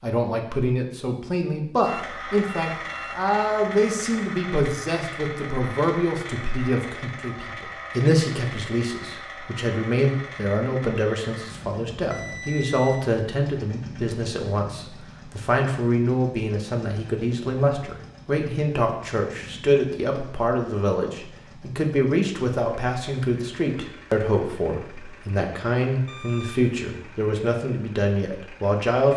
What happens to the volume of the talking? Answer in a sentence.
The loudness of the talking stays about the same.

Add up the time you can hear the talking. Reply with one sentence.
The talking can be heard for 29 seconds in total.